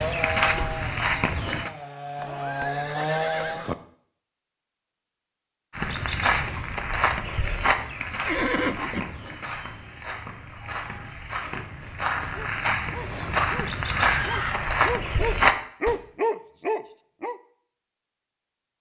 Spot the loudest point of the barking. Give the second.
16 s.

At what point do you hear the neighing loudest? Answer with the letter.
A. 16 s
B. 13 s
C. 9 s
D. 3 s
C.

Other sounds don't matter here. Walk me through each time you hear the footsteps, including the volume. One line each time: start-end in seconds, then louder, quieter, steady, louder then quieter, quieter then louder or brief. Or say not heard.
0.0-1.7 brief
5.7-15.9 quieter then louder.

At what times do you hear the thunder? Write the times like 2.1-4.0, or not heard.
not heard.